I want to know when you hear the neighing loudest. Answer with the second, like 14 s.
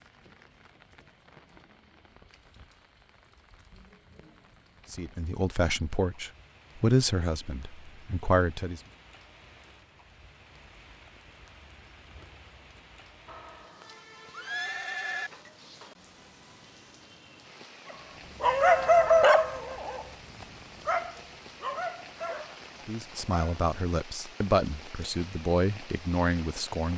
15 s.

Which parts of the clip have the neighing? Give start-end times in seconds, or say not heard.
13.2-15.3.